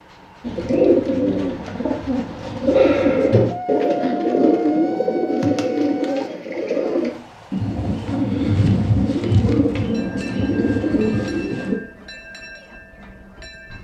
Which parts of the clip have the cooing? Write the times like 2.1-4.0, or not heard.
0.4-11.8.